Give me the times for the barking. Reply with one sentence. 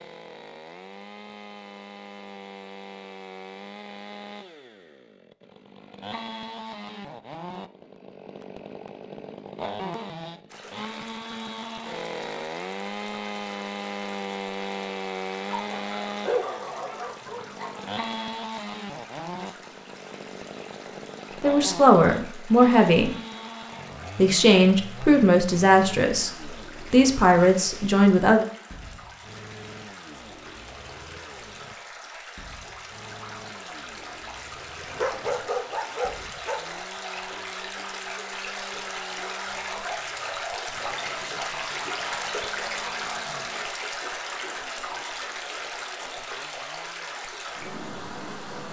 The barking can be heard from 15.4 to 17.9 s and from 34.8 to 36.6 s.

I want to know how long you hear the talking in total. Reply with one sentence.
You can hear the talking for 6 seconds altogether.